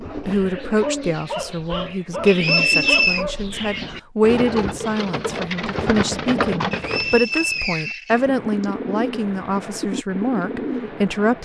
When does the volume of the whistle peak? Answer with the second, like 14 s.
3 s.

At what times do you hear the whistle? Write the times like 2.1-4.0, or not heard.
2.2-3.2, 6.7-8.7.